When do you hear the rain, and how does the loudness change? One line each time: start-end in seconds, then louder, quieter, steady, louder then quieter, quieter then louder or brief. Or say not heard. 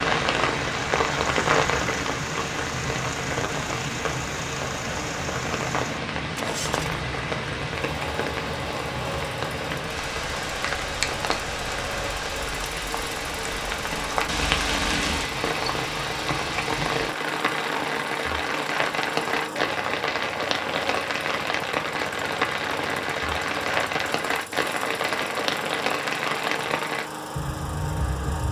0.0-28.4 steady.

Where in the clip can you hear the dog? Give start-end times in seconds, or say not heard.
not heard.